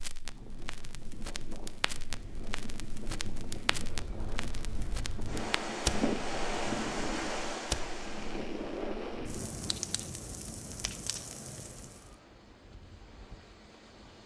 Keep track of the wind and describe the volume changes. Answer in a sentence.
The volume of the wind goes up, then down.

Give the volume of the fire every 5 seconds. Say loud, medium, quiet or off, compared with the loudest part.
medium, loud, medium.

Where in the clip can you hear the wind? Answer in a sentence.
You can hear the wind from 0.0 to 14.2 s.